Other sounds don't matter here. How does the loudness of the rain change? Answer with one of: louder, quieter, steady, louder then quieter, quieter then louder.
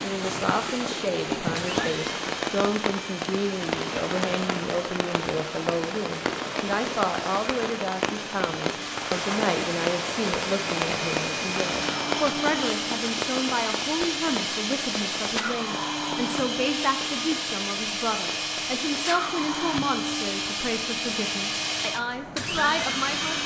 quieter.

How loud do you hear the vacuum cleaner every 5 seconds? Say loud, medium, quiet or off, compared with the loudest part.
medium, medium, loud, loud, loud.